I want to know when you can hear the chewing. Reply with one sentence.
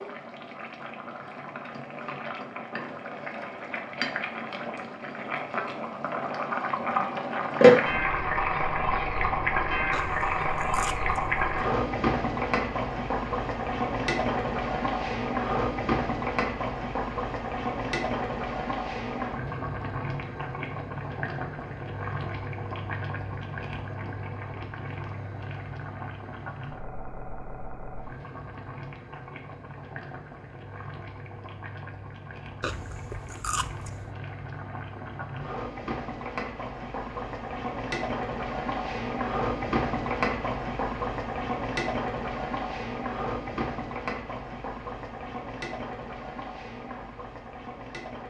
The chewing can be heard from 9.9 to 11.4 s and from 32.6 to 34.1 s.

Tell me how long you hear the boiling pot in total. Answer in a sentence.
You can hear the boiling pot for 48 seconds altogether.